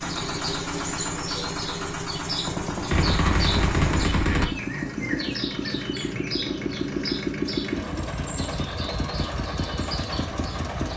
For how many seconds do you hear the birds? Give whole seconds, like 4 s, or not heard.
11 s.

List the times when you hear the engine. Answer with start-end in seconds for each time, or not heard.
0.0-10.9.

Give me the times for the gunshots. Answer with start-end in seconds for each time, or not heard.
2.5-4.5.